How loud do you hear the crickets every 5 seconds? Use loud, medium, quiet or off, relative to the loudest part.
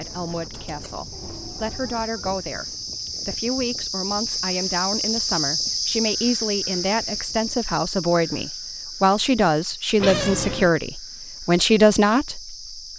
loud, loud, medium.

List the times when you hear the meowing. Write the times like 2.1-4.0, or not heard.
0.5-2.0, 9.9-10.7.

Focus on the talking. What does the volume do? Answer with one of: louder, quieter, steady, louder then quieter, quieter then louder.
louder.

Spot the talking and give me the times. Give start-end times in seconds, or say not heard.
0.0-12.6.